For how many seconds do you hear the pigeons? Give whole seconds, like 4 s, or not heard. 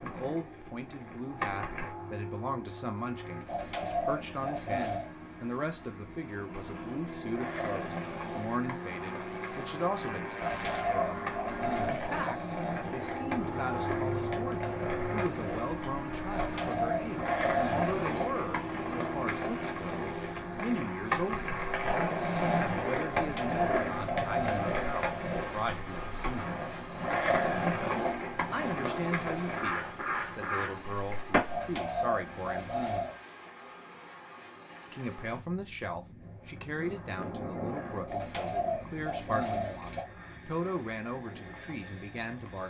11 s.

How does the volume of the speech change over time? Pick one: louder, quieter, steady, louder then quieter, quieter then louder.
steady.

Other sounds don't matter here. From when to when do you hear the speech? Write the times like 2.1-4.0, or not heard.
0.0-11.2, 11.8-21.6, 22.9-26.6, 28.5-32.7, 34.9-42.6.